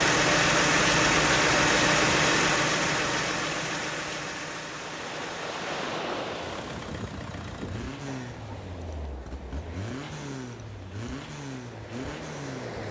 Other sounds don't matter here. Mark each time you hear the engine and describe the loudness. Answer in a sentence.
The engine can be heard from 0.0 to 12.8 s, getting quieter.